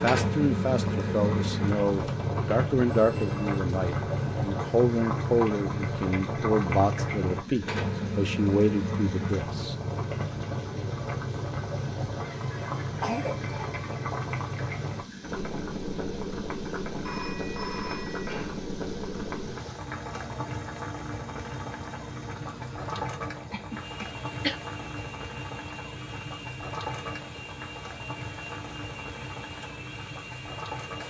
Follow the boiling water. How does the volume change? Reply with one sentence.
The volume of the boiling water goes down.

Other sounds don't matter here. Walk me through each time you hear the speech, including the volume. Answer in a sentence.
The speech can be heard from 0.0 to 9.8 s, at a steady volume.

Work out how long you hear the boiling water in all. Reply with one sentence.
You can hear the boiling water for 31 seconds altogether.